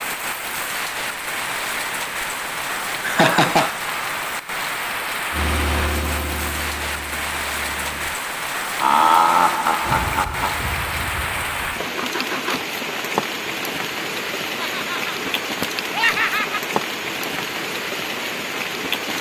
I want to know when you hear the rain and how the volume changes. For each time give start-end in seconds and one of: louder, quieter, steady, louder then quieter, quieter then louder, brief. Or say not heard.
0.0-19.1 steady.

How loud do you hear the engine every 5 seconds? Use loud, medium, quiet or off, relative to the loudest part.
off, loud, loud, off.